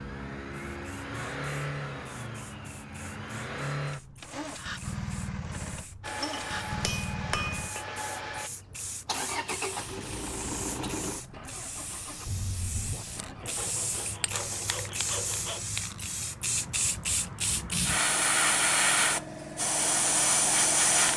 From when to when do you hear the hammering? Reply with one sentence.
The hammering can be heard from 6.0 to 8.5 s.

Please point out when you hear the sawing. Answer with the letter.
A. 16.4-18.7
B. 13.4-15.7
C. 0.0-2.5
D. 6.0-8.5
B.